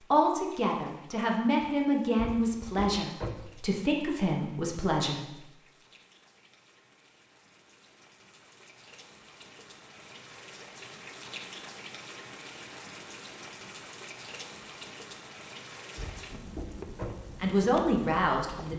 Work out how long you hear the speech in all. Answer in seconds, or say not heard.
7 s.